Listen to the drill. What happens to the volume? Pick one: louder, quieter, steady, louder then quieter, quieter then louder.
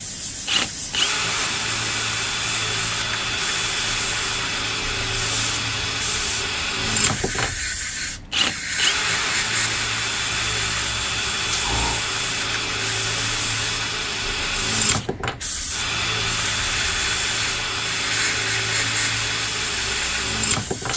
steady.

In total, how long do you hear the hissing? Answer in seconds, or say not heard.
21 s.